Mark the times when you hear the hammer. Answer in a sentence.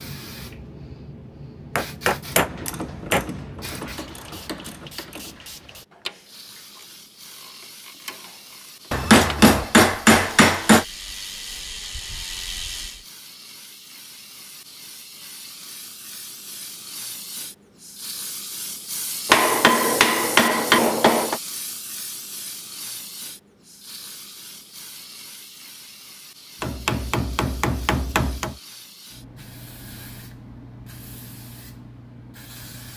The hammer can be heard from 1.8 to 3.2 s, from 8.9 to 10.8 s, from 19.2 to 21.4 s and from 26.6 to 28.6 s.